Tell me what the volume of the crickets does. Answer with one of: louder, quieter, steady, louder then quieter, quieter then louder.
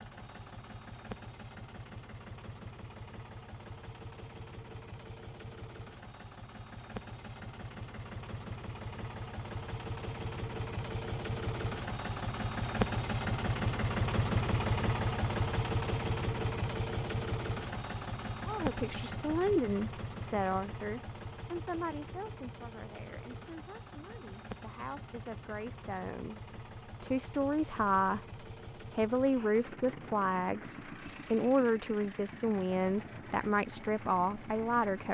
louder.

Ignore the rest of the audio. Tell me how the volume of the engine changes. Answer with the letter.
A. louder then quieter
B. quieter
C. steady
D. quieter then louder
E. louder
A.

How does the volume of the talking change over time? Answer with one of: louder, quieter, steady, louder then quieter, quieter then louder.
quieter then louder.